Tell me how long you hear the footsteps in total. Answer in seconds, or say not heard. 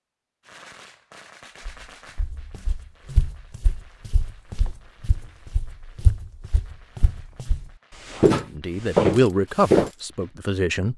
8 s.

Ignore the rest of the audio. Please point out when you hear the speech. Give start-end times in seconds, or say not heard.
8.3-10.9.